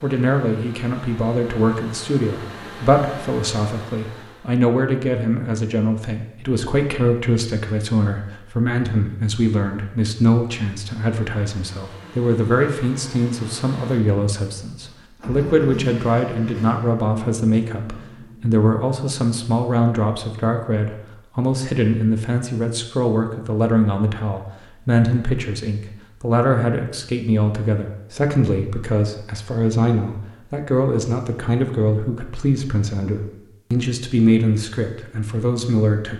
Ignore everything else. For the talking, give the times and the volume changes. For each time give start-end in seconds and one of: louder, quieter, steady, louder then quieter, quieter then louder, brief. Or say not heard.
0.0-36.1 steady.